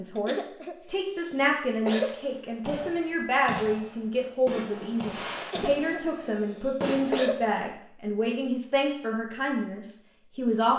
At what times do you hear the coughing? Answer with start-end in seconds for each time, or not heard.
0.1-2.1, 5.4-7.4.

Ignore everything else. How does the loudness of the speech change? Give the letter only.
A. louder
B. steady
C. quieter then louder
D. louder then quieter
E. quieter
B.